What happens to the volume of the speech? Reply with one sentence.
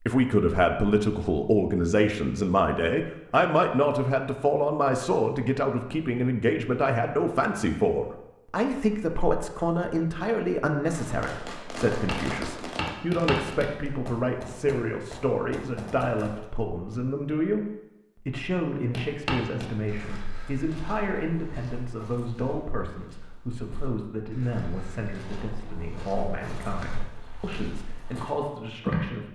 The loudness of the speech goes down.